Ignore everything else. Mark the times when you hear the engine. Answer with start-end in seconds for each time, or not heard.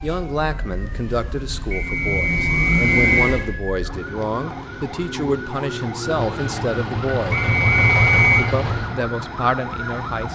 0.0-3.5, 6.0-8.9.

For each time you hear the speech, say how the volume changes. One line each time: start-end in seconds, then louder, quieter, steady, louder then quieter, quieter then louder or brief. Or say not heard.
0.0-7.5 steady
8.3-10.3 brief.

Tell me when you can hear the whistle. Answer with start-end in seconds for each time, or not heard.
1.7-3.2, 7.3-8.4.